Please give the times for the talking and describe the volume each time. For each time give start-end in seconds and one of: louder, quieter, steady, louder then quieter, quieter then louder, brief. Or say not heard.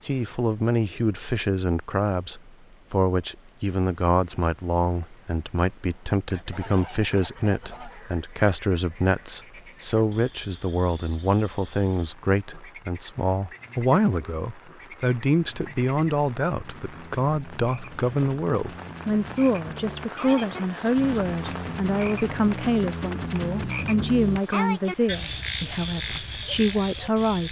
0.0-27.4 steady.